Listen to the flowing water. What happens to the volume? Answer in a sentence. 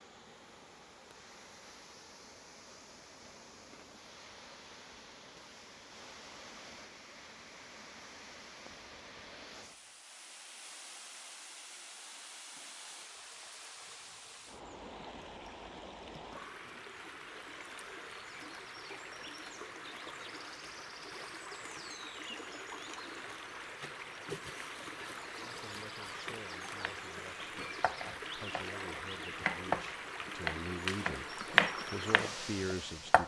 The volume of the flowing water goes up.